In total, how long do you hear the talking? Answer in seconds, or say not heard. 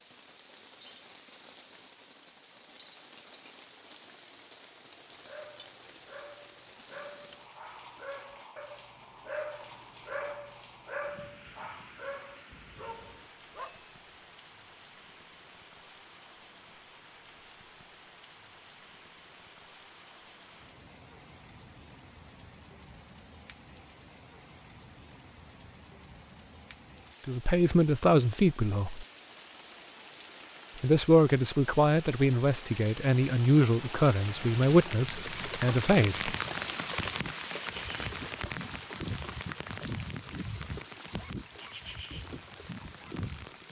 7 s.